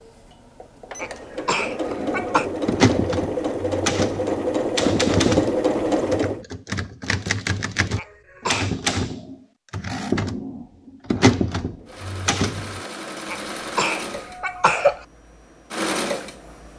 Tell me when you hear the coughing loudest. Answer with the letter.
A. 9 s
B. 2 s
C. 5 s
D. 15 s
D.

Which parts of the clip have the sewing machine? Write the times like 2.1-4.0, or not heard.
0.0-6.5, 11.8-16.7.